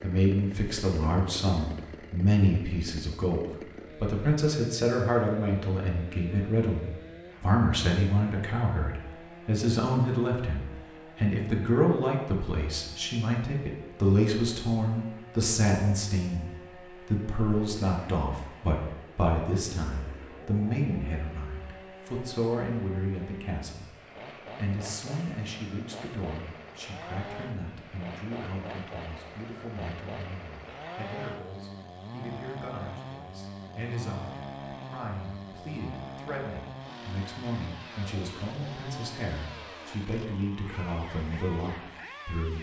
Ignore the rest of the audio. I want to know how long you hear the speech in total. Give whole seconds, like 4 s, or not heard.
42 s.